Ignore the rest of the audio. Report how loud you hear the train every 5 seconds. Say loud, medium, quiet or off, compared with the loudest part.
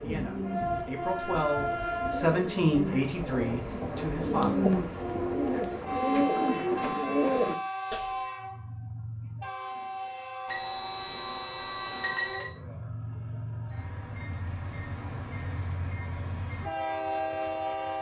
loud, loud, medium, loud.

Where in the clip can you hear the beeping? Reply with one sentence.
You can hear the beeping from 10.4 to 12.5 s.